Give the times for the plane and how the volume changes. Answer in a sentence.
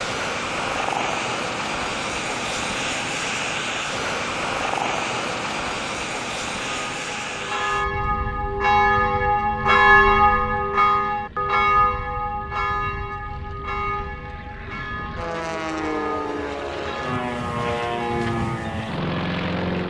You can hear the plane from 0.0 to 19.8 s, getting quieter then louder.